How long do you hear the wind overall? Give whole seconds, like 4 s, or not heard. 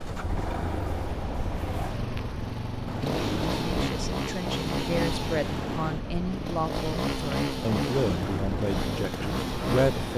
10 s.